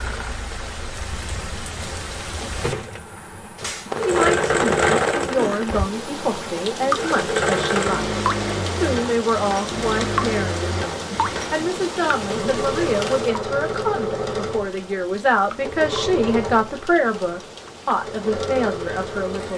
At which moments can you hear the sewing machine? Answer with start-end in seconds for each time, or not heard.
2.7-19.5.